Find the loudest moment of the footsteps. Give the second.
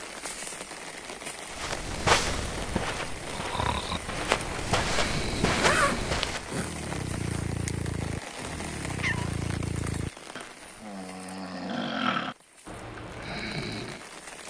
2 s.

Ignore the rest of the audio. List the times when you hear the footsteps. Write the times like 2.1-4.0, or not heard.
1.4-6.5.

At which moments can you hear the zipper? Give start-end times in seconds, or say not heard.
5.5-7.5.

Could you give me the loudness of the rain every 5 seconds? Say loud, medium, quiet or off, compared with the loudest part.
loud, loud, medium.